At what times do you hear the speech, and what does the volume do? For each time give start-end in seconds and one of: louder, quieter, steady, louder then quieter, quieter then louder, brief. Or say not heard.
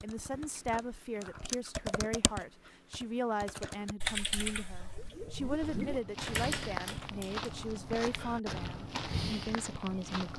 0.0-10.3 steady.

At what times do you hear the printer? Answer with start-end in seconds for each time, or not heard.
not heard.